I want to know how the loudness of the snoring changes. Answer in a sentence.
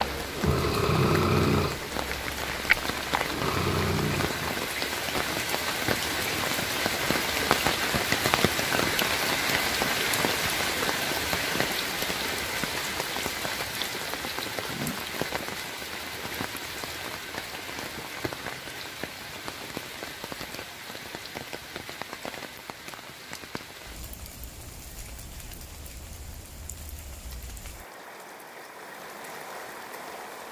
The volume of the snoring goes down, then up.